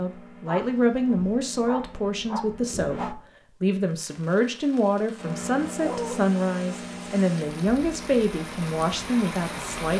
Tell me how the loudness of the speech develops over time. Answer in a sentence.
The loudness of the speech stays about the same.